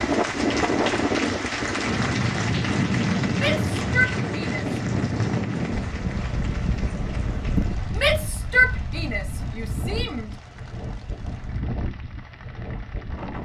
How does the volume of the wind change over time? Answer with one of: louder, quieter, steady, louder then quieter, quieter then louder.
quieter.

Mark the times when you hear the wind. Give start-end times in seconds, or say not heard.
0.0-13.4.